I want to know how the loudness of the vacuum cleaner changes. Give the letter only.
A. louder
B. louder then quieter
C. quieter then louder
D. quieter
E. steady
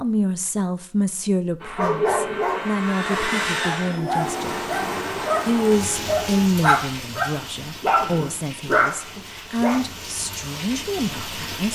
B.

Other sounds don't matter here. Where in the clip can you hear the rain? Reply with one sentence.
You can hear the rain from 4.0 to 11.7 s.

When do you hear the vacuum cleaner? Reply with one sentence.
You can hear the vacuum cleaner from 1.6 to 6.5 s.